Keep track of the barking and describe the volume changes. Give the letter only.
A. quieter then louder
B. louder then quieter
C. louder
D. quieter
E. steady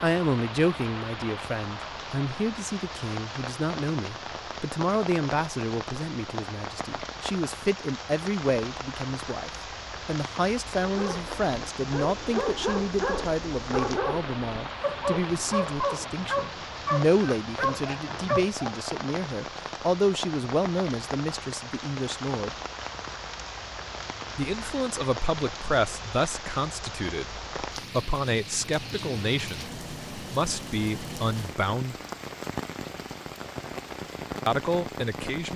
E.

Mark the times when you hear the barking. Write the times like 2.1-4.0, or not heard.
10.8-18.6.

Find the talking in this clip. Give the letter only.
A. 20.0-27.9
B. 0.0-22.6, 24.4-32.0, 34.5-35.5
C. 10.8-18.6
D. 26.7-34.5
B.